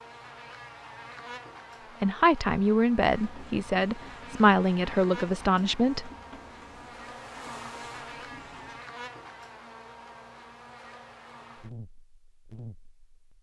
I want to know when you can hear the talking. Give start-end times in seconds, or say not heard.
2.0-6.1.